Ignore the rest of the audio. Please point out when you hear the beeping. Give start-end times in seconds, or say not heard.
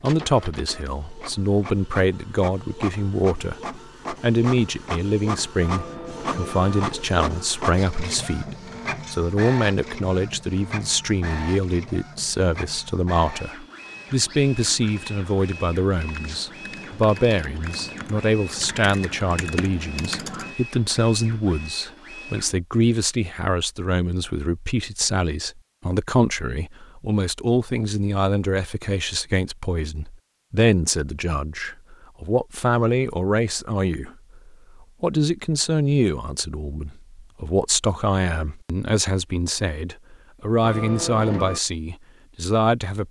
5.6-7.0, 40.6-41.6.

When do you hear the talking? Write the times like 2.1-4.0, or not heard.
0.0-3.6, 4.2-43.0.